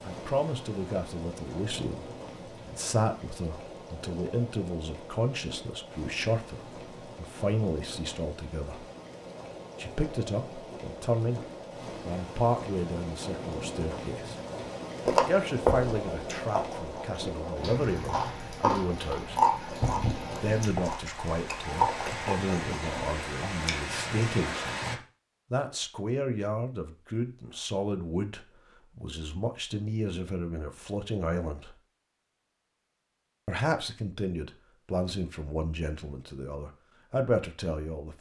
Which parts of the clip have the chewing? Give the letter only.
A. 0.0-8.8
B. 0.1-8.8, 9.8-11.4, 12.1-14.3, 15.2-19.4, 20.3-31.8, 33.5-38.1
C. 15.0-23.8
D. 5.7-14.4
C.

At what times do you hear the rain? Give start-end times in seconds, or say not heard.
0.0-25.0.